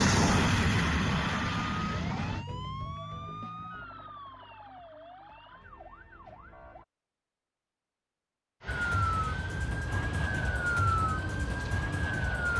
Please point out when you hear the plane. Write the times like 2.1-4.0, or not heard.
0.0-2.5, 8.6-12.5.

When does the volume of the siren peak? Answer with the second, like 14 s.
11 s.